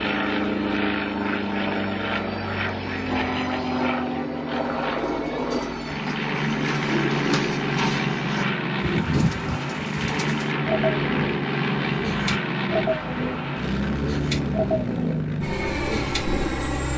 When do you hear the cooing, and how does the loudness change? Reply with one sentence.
The cooing can be heard from 4.6 to 16.4 s, at a steady volume.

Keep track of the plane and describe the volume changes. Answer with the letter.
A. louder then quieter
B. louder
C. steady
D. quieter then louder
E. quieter
C.